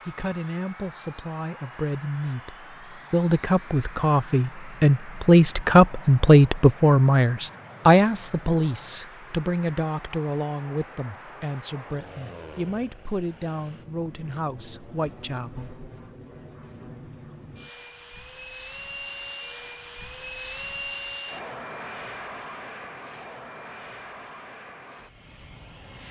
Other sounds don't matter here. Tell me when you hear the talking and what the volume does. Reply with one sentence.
The talking can be heard from 0.1 to 15.8 s, getting louder then quieter.